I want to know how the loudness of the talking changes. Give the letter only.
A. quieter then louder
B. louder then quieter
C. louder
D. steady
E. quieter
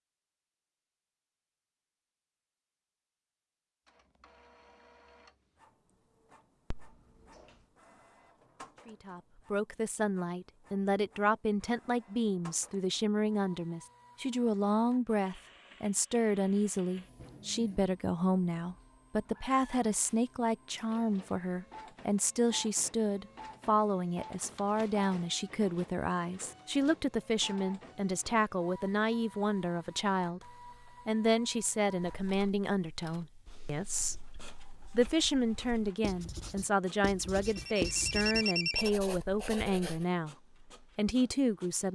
D.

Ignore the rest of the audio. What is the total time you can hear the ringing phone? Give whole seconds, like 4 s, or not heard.
2 s.